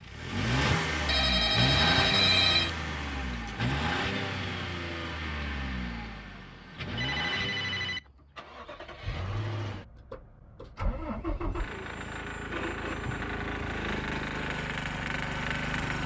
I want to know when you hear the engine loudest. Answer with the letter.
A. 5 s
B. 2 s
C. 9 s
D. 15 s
B.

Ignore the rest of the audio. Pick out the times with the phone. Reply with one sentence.
The phone can be heard from 1.1 to 2.7 s, from 7.0 to 8.1 s and from 11.4 to 13.3 s.